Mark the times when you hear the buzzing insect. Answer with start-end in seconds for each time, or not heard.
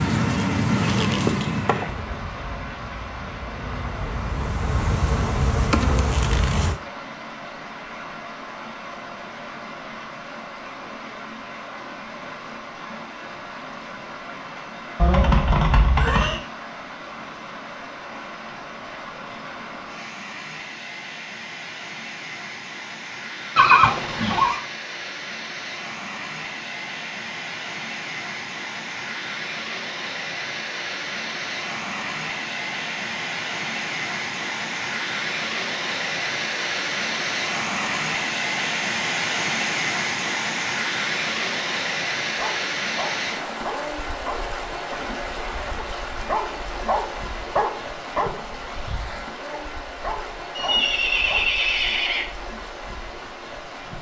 0.0-6.8.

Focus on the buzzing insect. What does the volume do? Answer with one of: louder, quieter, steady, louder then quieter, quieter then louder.
quieter then louder.